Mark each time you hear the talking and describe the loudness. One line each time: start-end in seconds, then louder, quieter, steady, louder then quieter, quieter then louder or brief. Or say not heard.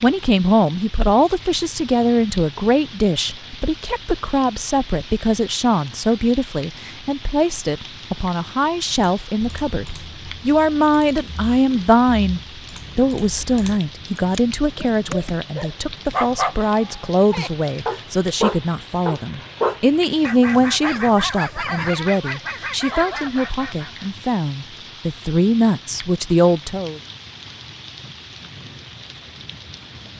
0.0-27.0 steady.